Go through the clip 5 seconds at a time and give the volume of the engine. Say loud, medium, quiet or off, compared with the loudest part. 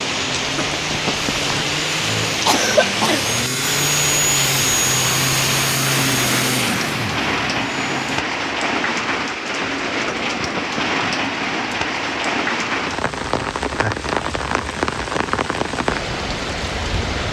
loud, loud, off, off.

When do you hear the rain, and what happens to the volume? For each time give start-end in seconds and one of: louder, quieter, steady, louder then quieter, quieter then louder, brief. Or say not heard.
0.0-17.2 steady.